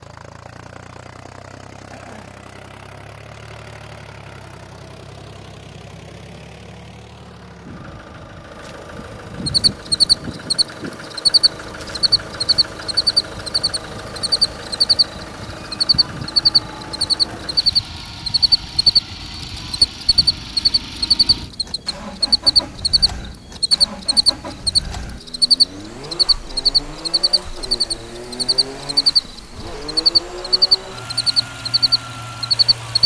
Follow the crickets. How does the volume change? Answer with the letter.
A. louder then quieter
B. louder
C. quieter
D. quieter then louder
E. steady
E.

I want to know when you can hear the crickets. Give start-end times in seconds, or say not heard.
9.4-33.0.